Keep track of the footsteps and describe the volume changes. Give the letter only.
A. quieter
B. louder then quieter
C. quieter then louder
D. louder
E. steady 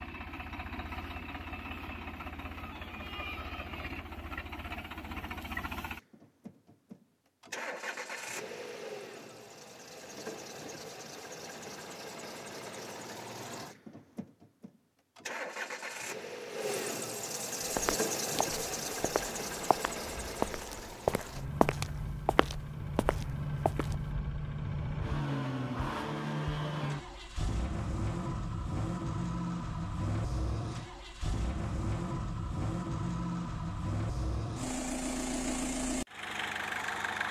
B.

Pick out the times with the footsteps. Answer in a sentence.
You can hear the footsteps from 17.6 to 24.1 s.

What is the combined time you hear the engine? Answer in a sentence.
You can hear the engine for 37 seconds altogether.